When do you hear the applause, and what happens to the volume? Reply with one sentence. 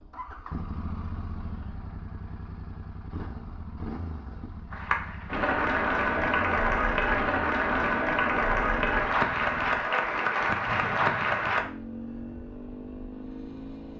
The applause can be heard from 4.7 to 11.7 s, at a steady volume.